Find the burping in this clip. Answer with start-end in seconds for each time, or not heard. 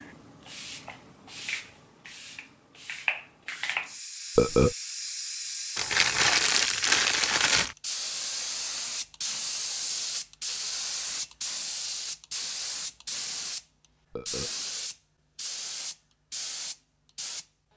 4.3-4.8, 14.1-14.5.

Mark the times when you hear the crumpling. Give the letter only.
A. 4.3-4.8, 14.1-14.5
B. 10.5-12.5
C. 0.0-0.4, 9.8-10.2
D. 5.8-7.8
D.